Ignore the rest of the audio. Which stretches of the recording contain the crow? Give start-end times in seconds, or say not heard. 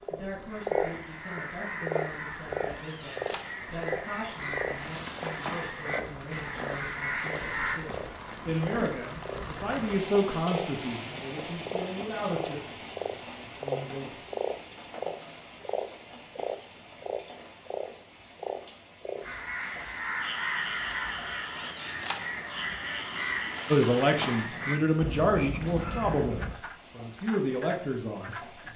0.5-7.8, 19.2-26.6.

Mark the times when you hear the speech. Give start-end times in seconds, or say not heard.
0.1-14.2, 23.7-28.7.